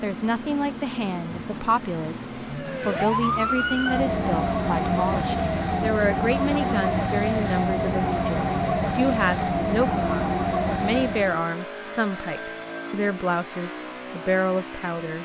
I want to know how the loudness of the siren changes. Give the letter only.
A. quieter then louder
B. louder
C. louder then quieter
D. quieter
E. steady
E.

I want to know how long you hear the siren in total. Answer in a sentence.
You can hear the siren for 9 seconds altogether.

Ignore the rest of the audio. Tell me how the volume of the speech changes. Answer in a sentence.
The volume of the speech stays about the same.